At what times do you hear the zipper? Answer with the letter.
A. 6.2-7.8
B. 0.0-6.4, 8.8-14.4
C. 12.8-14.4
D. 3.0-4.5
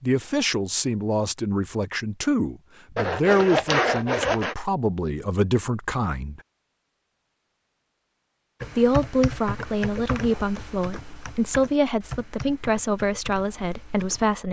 D.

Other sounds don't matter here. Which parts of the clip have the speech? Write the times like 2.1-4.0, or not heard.
0.0-6.4, 8.8-14.4.